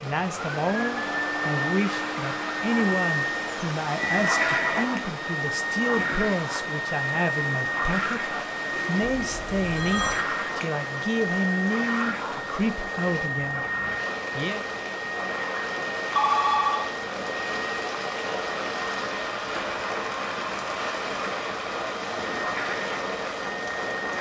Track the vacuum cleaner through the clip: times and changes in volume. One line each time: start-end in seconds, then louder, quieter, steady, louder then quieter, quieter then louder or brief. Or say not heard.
0.1-24.1 quieter.